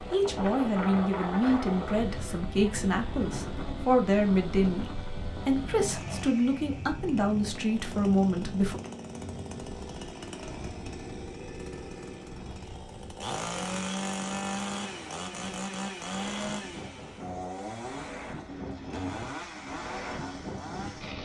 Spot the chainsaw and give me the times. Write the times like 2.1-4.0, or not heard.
0.0-21.2.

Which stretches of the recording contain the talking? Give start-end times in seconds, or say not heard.
0.1-8.8.